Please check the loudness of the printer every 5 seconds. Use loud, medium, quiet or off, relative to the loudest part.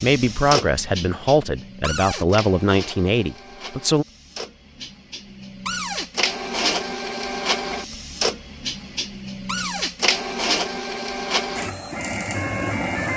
medium, loud, loud.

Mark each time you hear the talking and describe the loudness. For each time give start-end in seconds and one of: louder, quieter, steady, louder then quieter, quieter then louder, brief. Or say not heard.
0.0-4.0 steady.